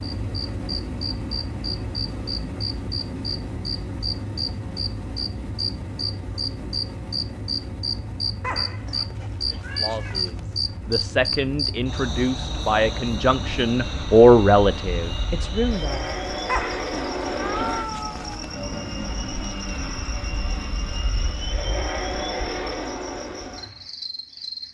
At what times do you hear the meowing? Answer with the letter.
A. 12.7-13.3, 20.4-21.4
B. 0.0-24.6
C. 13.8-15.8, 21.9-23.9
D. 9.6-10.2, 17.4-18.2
D.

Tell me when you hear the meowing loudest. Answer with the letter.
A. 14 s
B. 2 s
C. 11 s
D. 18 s
D.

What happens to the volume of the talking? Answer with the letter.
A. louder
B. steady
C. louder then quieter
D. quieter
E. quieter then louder
C.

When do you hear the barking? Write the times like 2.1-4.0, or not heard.
8.4-10.4, 16.4-18.4.